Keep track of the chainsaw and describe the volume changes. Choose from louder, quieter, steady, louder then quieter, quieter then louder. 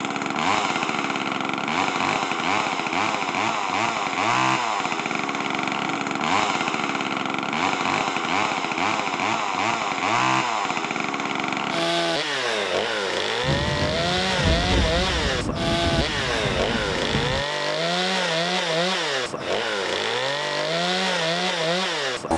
steady.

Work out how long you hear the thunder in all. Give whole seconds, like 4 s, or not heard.
4 s.